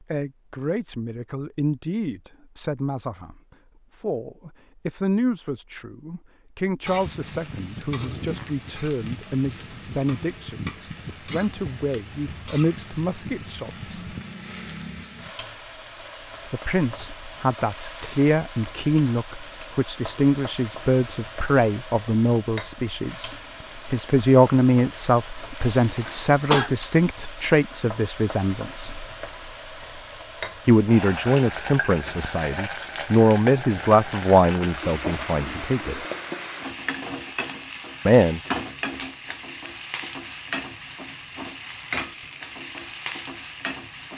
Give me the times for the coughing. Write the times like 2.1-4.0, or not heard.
25.6-26.8.